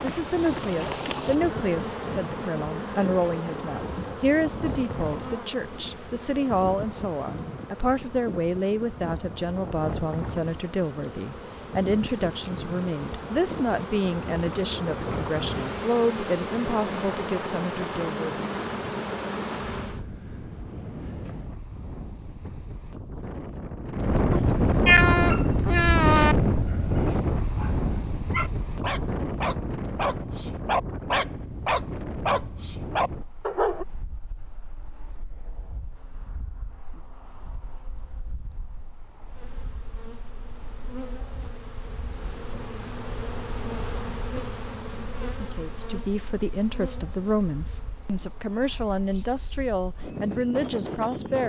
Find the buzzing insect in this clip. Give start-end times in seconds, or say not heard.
0.0-20.1, 39.2-51.4.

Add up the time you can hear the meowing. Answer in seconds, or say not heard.
2 s.